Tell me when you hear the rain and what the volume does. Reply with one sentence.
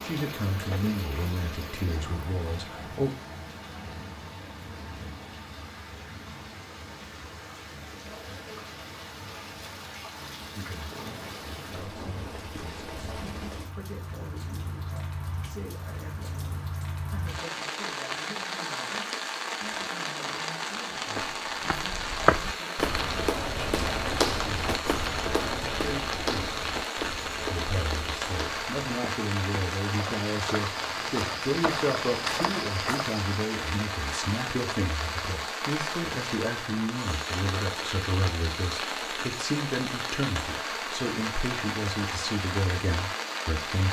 You can hear the rain from 0.0 to 43.8 s, getting louder.